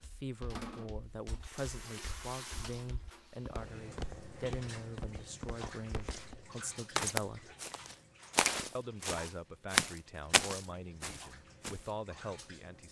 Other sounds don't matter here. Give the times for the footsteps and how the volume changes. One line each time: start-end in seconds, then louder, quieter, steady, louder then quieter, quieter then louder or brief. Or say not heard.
0.0-11.9 louder.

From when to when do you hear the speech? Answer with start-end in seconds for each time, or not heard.
0.0-7.5, 8.8-12.8.